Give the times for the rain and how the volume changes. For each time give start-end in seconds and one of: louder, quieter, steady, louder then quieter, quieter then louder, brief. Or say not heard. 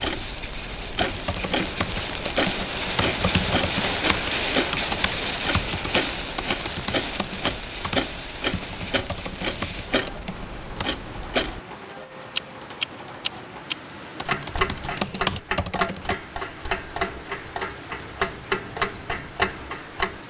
0.0-20.2 quieter.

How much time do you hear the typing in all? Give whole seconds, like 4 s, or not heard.
12 s.